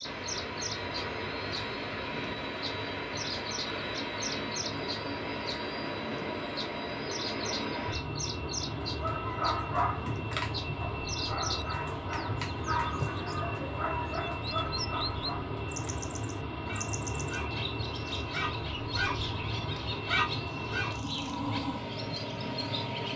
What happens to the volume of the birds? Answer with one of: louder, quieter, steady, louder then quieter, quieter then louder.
steady.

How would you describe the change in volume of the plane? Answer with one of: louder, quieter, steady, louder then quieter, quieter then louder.
steady.